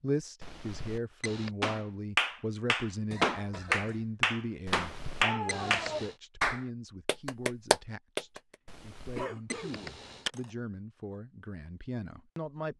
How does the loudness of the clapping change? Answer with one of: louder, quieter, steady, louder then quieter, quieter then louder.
steady.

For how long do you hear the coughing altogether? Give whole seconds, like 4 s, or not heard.
2 s.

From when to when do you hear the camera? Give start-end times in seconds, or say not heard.
0.4-1.5, 4.7-6.2, 8.7-10.3.